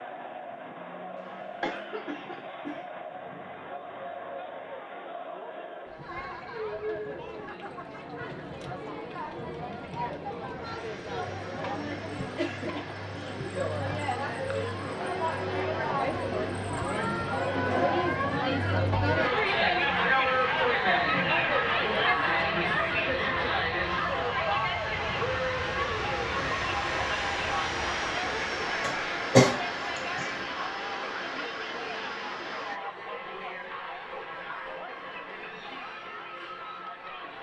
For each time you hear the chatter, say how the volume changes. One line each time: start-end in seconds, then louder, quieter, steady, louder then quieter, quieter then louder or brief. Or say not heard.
0.0-37.3 louder then quieter.